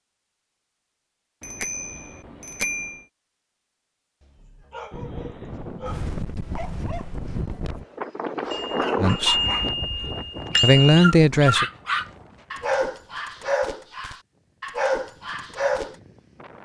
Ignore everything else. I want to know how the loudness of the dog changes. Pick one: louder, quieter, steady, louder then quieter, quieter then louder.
louder.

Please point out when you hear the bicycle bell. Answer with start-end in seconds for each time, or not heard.
1.4-3.0, 8.5-10.9.